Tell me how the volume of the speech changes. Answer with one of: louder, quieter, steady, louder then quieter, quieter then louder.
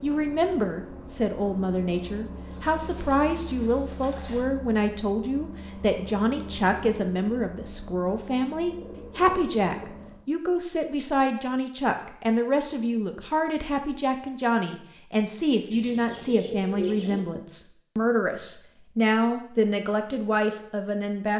steady.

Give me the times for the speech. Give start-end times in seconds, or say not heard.
0.0-21.3.